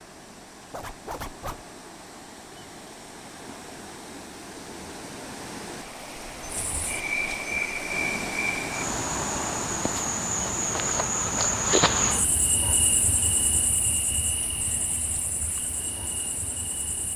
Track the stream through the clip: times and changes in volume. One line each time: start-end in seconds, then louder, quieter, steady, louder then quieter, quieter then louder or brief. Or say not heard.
0.0-17.1 louder then quieter.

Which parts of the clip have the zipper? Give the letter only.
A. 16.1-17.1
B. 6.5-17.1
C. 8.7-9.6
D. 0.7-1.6
D.